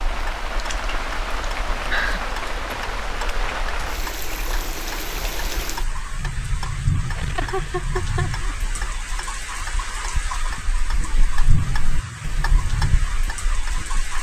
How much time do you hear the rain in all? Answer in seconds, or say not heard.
14 s.